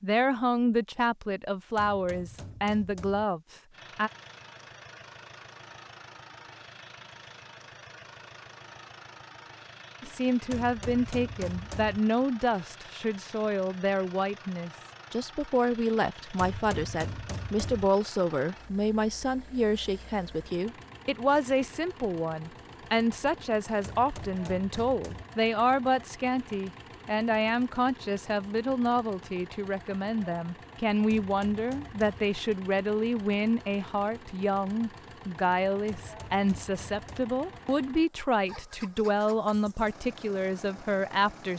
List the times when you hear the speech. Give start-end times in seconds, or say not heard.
0.0-4.1, 10.0-41.5.